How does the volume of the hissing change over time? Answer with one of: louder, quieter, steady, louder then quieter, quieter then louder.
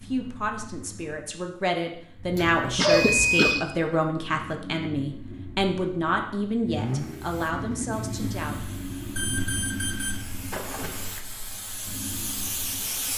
louder.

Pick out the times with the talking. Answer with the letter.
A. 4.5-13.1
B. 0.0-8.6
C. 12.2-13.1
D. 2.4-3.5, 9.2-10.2
B.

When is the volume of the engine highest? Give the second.
7 s.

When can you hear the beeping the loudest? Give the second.
3 s.